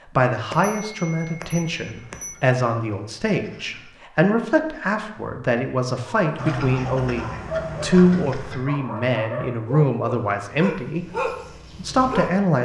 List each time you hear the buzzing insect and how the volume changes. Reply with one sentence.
You can't hear the buzzing insect here.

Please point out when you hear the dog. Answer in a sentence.
You can hear the dog from 6.2 to 12.4 s.